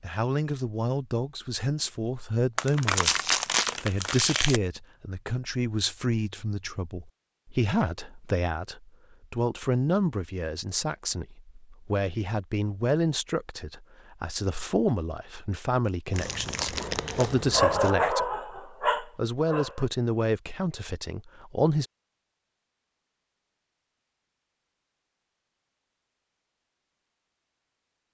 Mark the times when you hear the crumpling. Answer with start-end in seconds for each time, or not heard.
2.5-4.6, 16.1-17.9.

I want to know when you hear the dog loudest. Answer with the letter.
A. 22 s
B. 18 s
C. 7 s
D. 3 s
B.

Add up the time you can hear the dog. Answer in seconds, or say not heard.
3 s.